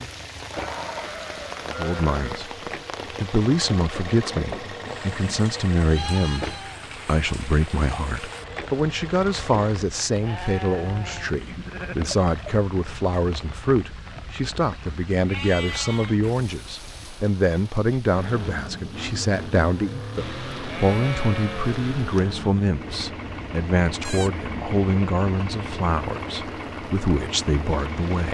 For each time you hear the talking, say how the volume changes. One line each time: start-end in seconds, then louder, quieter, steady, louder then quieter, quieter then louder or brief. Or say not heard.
1.6-28.2 steady.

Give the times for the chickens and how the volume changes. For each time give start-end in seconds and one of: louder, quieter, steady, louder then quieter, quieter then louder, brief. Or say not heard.
not heard.